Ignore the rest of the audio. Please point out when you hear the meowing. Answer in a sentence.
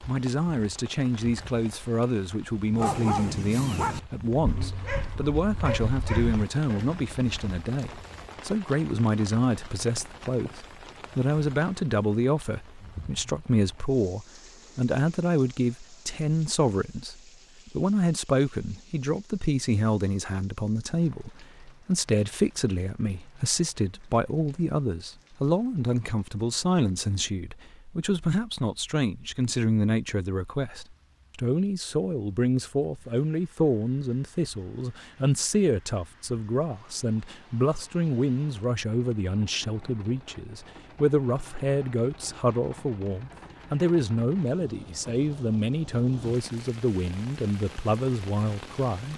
You can't hear the meowing here.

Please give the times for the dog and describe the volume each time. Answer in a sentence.
You can hear the dog from 2.8 to 8.3 s, getting quieter.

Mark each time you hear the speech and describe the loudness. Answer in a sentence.
You can hear the speech from 0.1 to 49.1 s, at a steady volume.